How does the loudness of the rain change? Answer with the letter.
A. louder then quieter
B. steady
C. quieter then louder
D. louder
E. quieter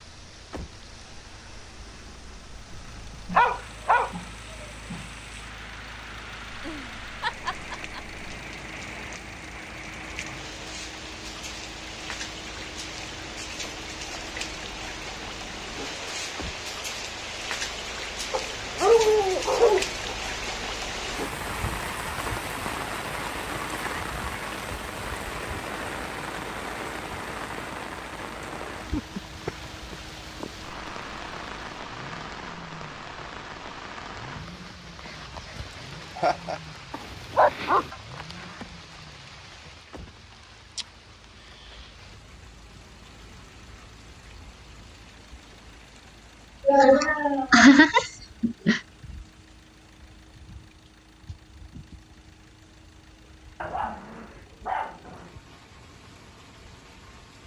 A.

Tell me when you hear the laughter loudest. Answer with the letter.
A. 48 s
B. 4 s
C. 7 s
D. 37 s
A.